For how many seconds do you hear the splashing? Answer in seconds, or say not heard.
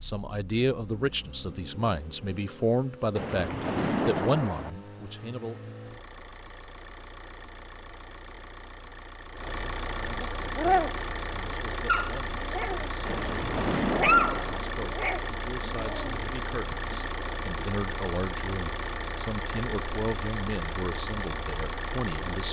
3 s.